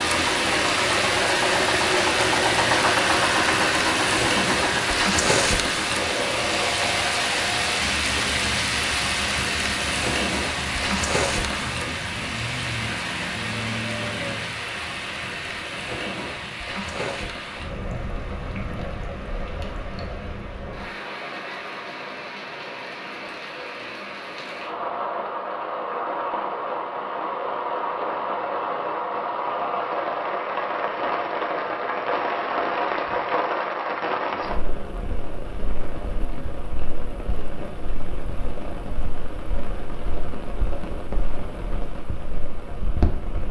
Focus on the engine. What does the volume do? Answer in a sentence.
The loudness of the engine goes down.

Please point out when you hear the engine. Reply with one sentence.
You can hear the engine from 0.0 to 14.6 s.